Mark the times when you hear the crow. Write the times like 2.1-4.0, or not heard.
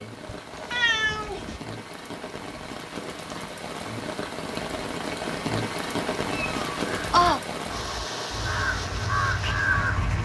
6.8-10.2.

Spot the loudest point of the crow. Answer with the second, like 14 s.
10 s.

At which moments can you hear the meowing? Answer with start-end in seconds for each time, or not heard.
0.2-1.6, 6.3-7.4.